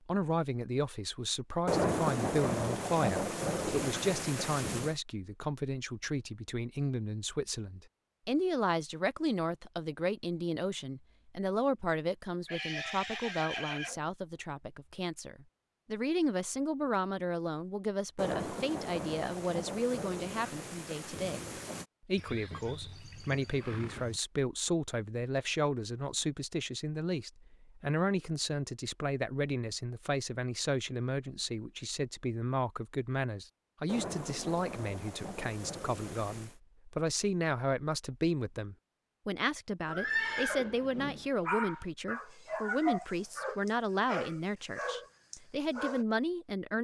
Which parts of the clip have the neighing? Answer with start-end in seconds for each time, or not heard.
12.4-14.1, 22.1-24.2, 39.9-41.2.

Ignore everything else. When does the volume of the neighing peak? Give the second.
40 s.